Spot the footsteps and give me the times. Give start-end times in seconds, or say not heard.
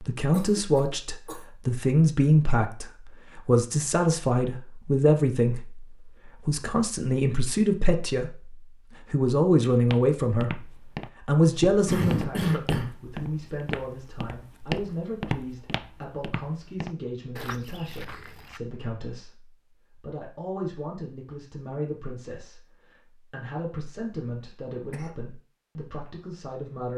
9.9-18.6.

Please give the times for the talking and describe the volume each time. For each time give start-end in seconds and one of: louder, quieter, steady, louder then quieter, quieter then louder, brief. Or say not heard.
0.0-26.9 quieter.